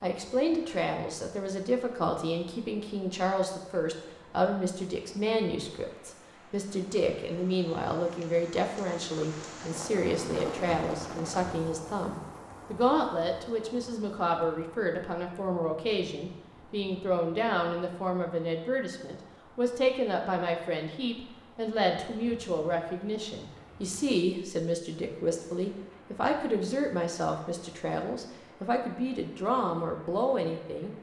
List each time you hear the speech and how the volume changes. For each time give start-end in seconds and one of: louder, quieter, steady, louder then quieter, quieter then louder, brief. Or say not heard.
0.0-30.9 steady.